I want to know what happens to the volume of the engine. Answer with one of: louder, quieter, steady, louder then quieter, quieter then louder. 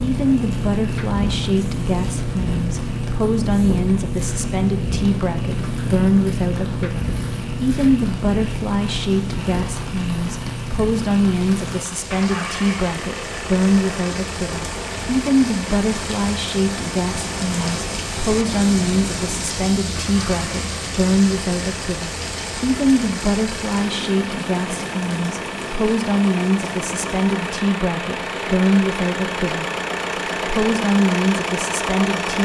quieter then louder.